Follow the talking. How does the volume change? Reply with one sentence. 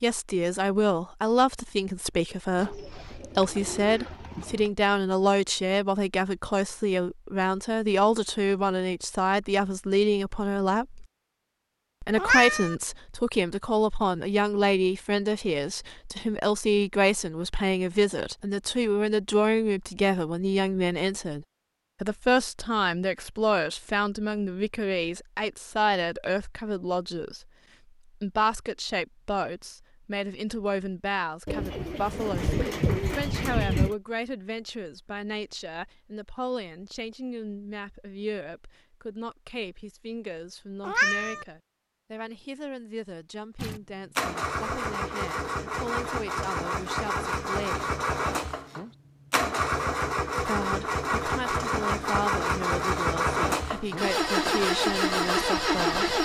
The loudness of the talking goes down.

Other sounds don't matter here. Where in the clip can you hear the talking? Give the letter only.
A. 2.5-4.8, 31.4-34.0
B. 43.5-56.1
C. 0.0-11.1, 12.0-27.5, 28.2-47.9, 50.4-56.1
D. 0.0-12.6
C.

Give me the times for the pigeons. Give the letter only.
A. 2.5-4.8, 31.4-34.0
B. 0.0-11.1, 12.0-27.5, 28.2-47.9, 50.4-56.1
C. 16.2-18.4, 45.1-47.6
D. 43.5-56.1
A.